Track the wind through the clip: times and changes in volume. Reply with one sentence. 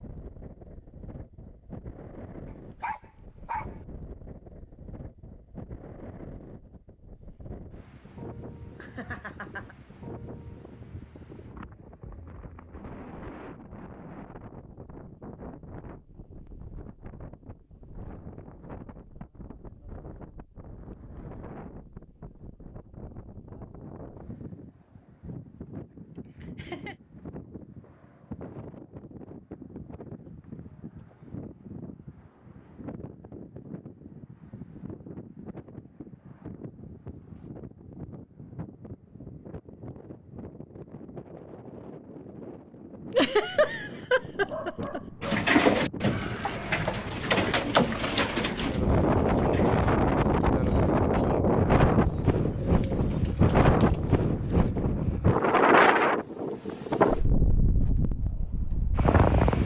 The wind can be heard from 0.0 to 59.6 s, getting louder.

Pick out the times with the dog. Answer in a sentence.
The dog can be heard from 2.8 to 3.8 s and from 44.4 to 45.4 s.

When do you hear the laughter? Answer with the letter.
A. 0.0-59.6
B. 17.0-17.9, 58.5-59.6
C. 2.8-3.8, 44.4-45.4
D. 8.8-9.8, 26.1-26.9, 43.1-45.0
D.